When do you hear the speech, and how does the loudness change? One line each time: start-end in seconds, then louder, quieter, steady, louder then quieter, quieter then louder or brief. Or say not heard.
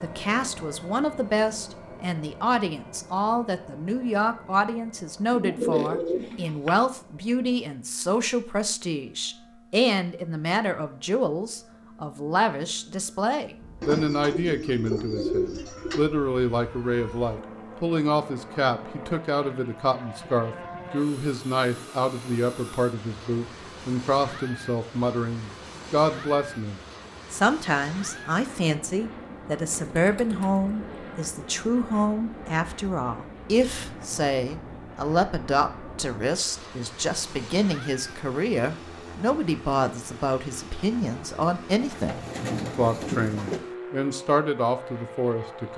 0.0-45.7 steady.